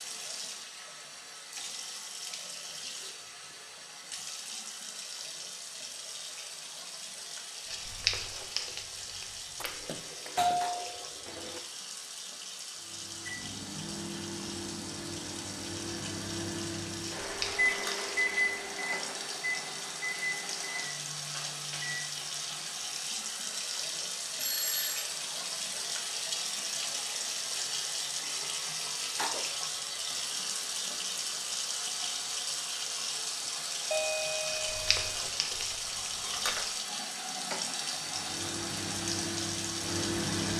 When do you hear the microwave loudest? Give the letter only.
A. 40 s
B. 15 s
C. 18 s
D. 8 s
C.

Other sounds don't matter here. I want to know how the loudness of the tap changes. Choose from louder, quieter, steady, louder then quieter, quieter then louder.
louder.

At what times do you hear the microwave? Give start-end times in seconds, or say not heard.
12.8-22.3, 37.9-40.5.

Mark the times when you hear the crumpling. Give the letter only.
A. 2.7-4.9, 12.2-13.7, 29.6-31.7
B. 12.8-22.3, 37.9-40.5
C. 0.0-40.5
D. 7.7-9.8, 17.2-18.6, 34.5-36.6
D.